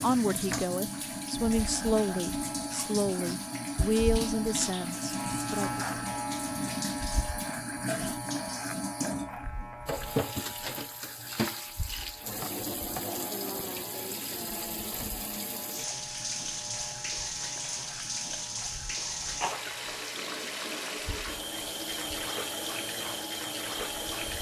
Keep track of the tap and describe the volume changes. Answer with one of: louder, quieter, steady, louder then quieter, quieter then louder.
steady.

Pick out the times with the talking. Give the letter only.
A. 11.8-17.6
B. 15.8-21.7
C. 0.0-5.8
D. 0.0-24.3
C.